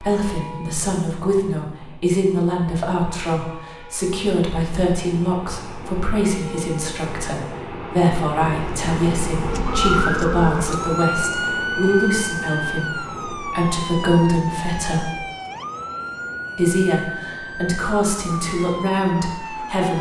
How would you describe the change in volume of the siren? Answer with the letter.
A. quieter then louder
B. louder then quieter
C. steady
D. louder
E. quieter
E.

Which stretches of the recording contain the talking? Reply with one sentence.
The talking can be heard from 0.0 to 15.2 s and from 16.6 to 19.9 s.